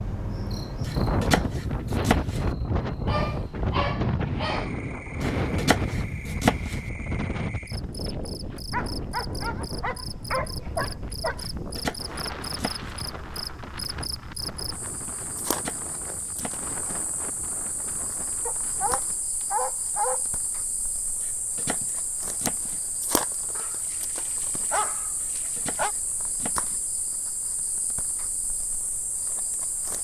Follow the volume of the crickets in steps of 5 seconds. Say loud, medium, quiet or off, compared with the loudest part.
medium, medium, loud, loud, loud, loud.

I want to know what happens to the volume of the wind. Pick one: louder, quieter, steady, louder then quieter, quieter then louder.
quieter.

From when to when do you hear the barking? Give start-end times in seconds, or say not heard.
3.0-4.7, 8.7-11.5, 18.4-20.4, 23.6-25.9.